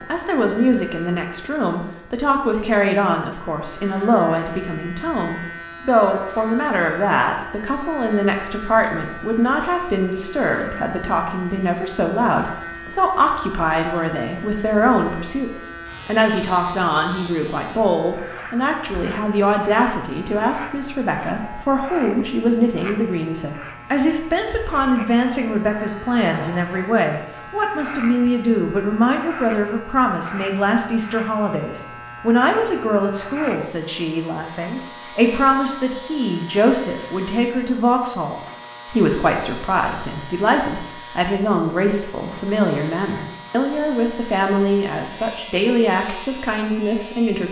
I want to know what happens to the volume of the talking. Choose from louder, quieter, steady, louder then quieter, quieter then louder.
steady.